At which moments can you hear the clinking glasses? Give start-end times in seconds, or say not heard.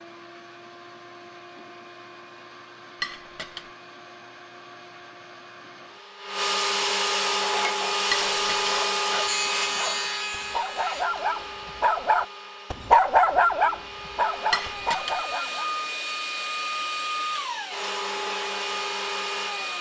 3.0-3.6, 8.1-8.8, 14.5-15.2.